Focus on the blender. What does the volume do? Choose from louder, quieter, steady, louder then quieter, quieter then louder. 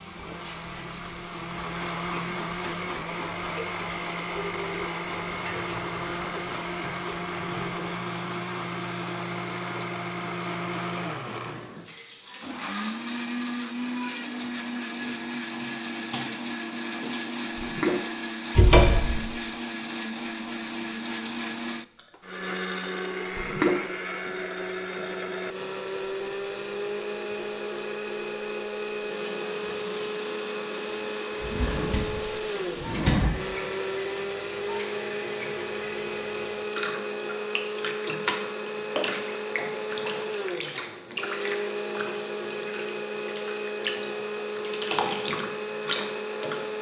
steady.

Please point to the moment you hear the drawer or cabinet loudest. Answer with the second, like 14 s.
19 s.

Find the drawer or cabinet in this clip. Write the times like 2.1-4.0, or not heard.
18.6-19.2, 31.4-33.3.